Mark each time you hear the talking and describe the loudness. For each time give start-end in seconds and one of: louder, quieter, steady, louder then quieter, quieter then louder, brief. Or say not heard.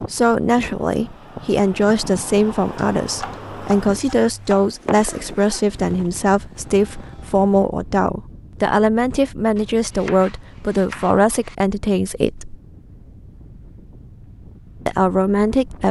0.0-12.6 steady
14.8-15.8 brief.